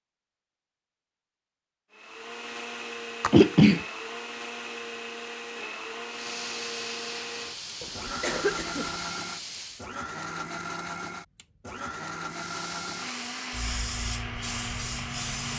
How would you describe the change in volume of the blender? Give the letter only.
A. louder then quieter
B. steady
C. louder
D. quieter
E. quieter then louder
B.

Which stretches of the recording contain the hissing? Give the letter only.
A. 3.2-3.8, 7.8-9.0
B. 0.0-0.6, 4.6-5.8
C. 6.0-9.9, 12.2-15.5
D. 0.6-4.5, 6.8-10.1
C.